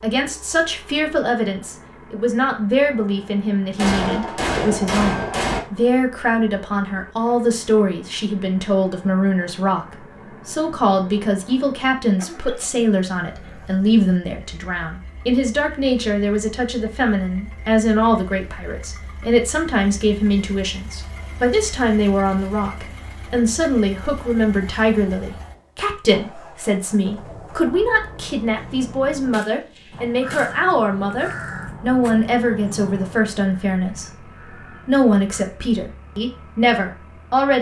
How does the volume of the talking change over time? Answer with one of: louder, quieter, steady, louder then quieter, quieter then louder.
steady.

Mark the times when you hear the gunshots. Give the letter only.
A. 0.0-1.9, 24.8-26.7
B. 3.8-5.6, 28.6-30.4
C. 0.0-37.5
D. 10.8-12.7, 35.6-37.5
B.